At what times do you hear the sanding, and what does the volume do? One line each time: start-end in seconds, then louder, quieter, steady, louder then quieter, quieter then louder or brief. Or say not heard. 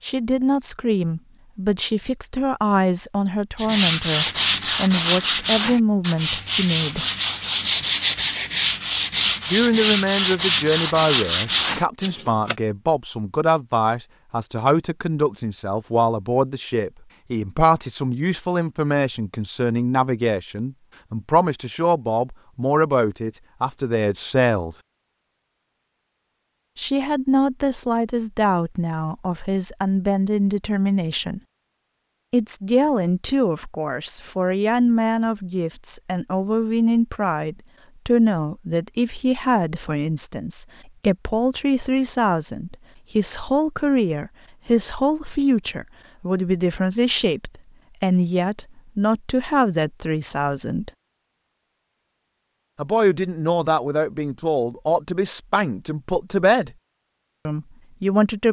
3.5-12.6 steady.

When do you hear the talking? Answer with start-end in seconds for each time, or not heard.
0.0-7.0, 9.5-24.8, 26.8-31.4, 32.3-50.9, 52.8-56.7, 57.5-58.4.